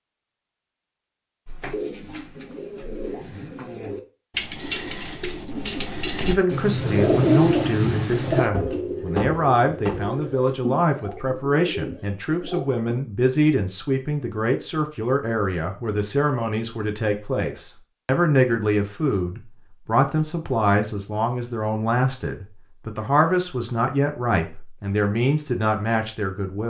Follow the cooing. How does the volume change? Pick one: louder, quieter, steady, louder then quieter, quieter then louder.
louder then quieter.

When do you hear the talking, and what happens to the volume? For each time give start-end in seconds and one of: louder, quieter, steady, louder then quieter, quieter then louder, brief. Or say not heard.
6.2-26.6 steady.